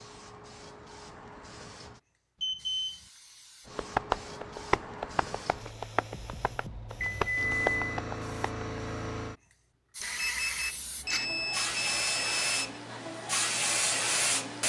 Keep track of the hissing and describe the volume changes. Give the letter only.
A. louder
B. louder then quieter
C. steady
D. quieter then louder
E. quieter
A.